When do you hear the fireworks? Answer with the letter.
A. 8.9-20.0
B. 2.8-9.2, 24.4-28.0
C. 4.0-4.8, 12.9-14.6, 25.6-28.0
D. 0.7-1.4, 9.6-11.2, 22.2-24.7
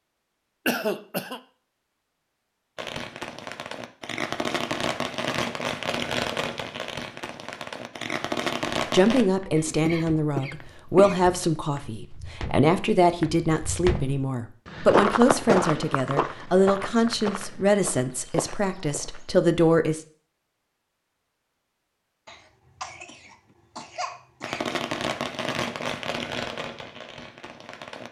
B.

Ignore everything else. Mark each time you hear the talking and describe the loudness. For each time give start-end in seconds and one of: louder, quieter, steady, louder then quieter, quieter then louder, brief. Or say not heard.
8.9-20.0 steady.